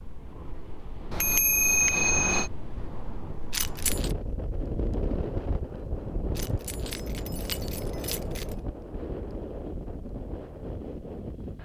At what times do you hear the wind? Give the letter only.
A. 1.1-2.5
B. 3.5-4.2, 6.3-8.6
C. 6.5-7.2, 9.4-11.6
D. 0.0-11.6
D.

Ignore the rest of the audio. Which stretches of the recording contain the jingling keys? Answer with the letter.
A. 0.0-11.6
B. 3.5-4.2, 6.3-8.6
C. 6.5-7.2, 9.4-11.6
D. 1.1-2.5
B.